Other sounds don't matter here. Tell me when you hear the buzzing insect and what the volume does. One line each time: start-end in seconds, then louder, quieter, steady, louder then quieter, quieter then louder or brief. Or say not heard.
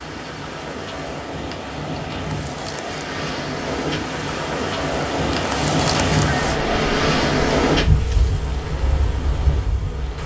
0.0-10.2 louder then quieter.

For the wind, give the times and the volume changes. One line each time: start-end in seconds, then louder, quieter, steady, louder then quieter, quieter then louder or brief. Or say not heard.
0.0-10.2 louder then quieter.